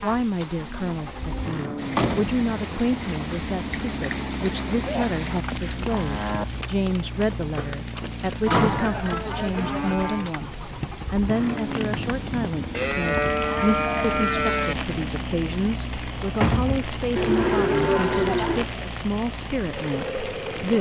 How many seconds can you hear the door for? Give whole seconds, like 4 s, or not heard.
3 s.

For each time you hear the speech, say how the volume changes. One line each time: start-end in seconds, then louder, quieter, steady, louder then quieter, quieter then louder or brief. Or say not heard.
0.0-20.7 steady.